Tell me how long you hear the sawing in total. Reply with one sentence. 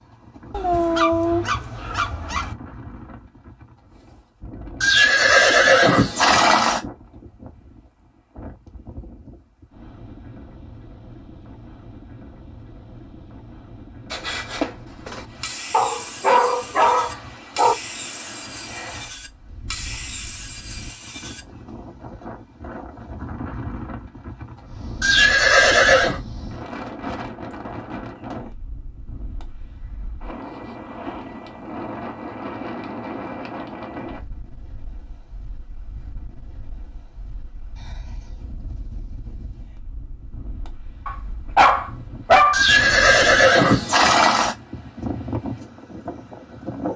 The sawing can be heard for 7 seconds in total.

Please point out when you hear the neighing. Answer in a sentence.
The neighing can be heard from 4.8 to 6.8 s, from 25.0 to 26.2 s and from 42.5 to 44.5 s.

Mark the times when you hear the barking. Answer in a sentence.
The barking can be heard from 0.5 to 2.5 s, from 15.7 to 17.8 s and from 41.0 to 42.6 s.